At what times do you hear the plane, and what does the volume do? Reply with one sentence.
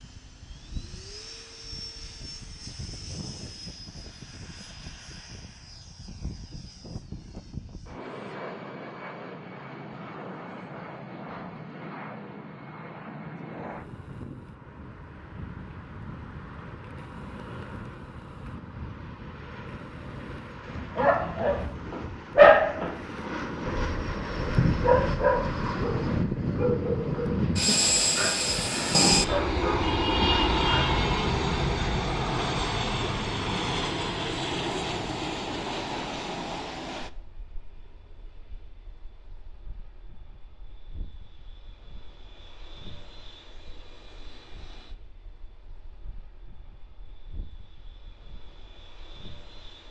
The plane can be heard from 0.0 to 49.8 s, getting louder then quieter.